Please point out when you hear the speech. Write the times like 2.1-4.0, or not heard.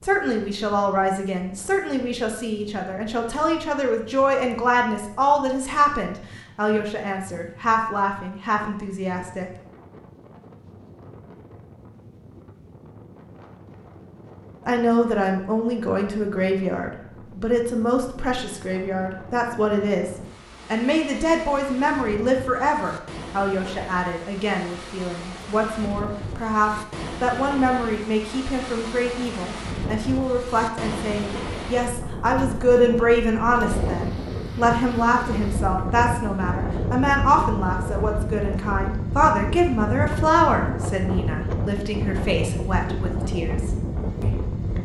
0.0-9.5, 14.7-44.5.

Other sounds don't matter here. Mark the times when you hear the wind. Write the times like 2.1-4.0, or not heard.
0.0-44.8.